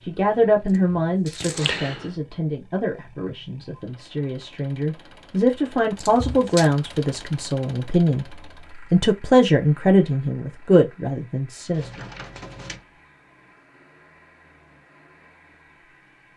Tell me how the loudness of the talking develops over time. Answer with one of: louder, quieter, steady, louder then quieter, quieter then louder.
quieter then louder.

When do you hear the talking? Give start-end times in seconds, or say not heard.
0.0-8.2, 8.9-12.1.